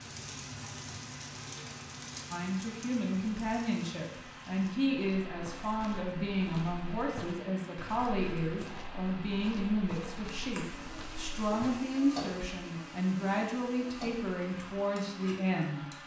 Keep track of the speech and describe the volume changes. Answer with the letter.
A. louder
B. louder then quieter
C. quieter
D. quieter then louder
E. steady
E.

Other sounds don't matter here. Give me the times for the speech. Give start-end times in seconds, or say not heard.
2.3-16.0.